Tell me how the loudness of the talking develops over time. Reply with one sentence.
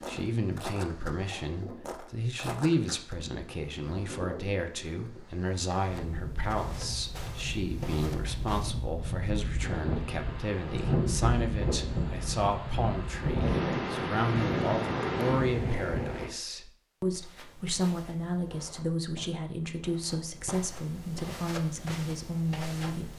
The volume of the talking stays about the same.